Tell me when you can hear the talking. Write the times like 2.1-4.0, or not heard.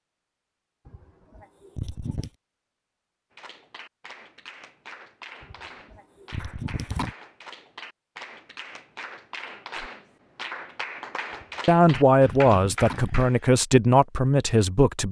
11.7-15.0.